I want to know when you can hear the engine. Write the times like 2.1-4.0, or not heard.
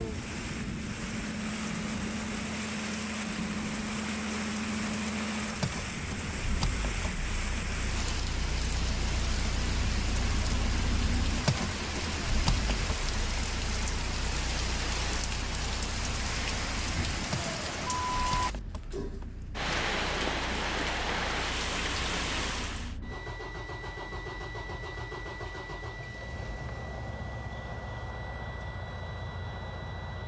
0.0-30.2.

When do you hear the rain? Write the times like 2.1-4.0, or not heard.
0.0-22.9.